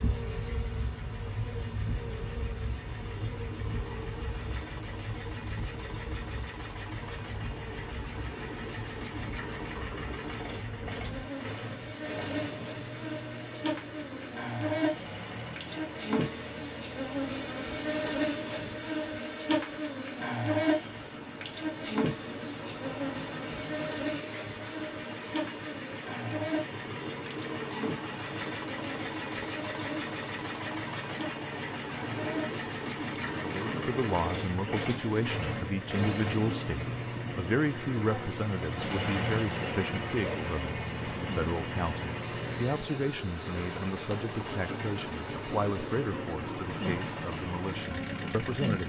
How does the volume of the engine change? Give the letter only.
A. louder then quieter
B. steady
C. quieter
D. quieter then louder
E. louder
E.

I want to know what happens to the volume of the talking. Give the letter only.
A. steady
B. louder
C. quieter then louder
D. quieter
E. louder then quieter
A.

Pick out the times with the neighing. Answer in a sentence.
You can't hear the neighing here.